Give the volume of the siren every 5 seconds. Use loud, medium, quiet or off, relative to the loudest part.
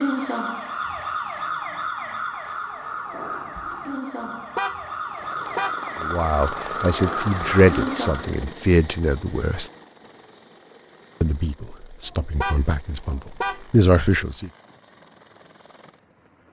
loud, loud, off, off.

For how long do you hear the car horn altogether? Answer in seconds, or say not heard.
3 s.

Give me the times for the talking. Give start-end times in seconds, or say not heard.
6.0-9.7, 11.2-14.5.